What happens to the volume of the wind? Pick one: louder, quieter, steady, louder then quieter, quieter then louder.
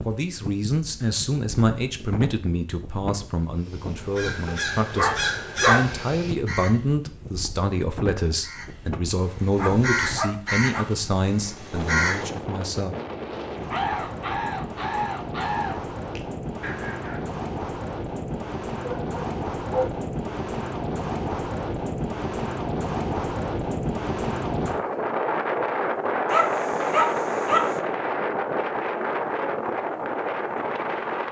louder.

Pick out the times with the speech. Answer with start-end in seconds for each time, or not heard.
0.1-12.9.